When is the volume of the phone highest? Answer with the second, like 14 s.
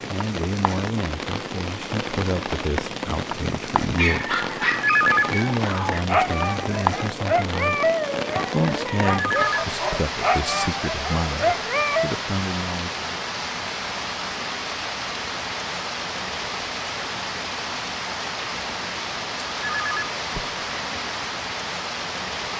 5 s.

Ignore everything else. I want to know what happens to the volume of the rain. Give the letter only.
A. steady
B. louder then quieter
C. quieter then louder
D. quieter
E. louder
A.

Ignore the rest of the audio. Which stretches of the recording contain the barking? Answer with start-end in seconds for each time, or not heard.
4.0-12.2.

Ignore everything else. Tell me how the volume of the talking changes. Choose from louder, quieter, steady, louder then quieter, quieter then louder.
steady.